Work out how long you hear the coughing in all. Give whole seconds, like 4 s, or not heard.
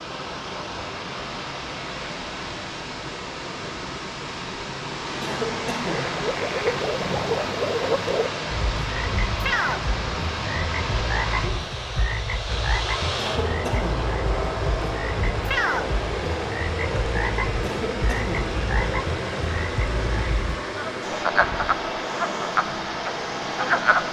3 s.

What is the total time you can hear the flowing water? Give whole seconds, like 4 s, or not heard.
24 s.